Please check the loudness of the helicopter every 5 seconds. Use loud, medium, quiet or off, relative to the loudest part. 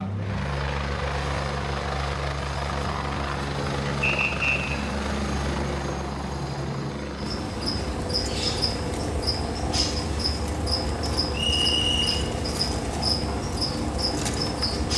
loud, loud, medium.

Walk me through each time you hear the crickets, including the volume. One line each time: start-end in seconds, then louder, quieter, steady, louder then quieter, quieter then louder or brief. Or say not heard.
7.2-14.9 steady.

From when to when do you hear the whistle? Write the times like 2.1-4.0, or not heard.
4.0-4.8, 11.3-12.2.